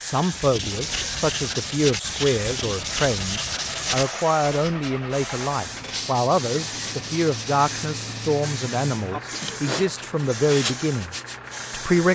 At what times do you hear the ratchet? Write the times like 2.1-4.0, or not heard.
not heard.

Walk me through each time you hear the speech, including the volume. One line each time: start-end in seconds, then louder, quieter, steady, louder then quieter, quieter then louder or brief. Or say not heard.
0.0-12.1 steady.